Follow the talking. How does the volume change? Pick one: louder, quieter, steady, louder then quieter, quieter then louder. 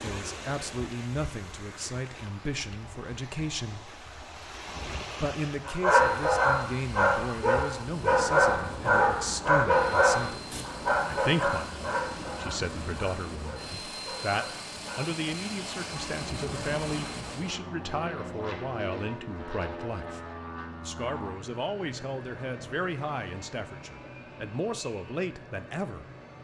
steady.